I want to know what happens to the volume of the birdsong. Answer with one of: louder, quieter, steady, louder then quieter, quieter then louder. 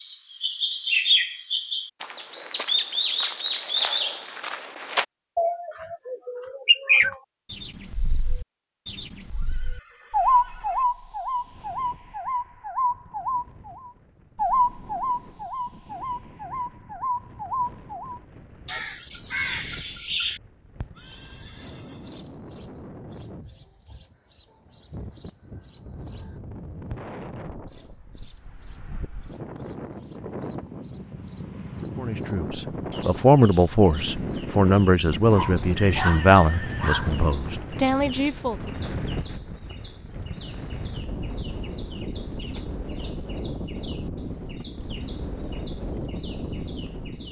quieter.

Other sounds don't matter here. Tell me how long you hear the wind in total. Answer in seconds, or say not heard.
36 s.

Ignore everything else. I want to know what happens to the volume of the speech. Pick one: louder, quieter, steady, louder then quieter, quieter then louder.
quieter.